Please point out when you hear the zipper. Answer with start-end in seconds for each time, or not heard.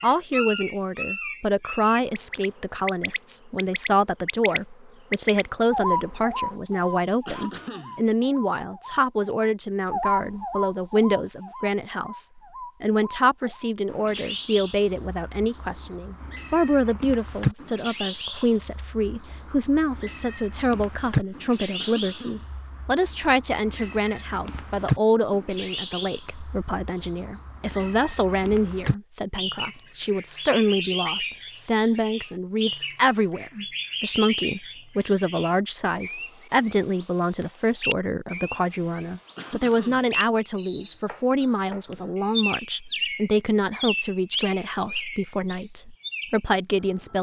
not heard.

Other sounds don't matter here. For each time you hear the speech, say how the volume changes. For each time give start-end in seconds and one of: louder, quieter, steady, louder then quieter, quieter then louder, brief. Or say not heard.
0.0-47.1 steady.